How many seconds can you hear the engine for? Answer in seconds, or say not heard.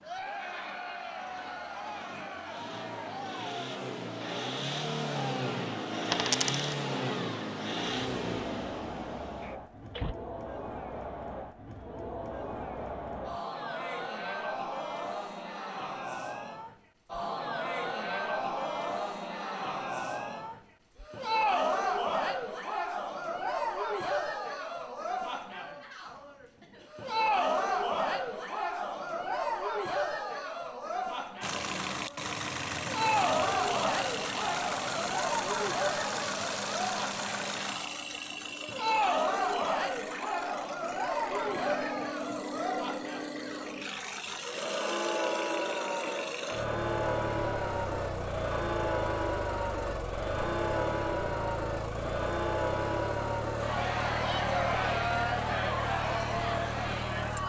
36 s.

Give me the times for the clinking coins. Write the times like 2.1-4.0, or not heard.
6.1-6.7.